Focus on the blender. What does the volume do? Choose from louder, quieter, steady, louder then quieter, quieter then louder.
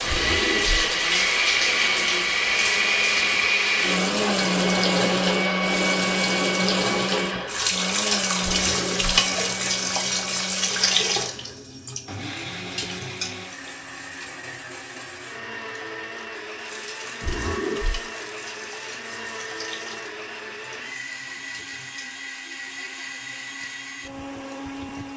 quieter.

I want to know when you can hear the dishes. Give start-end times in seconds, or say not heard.
not heard.